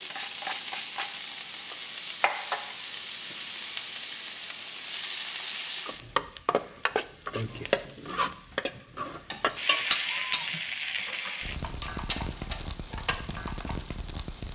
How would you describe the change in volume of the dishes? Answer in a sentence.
The volume of the dishes goes down, then up.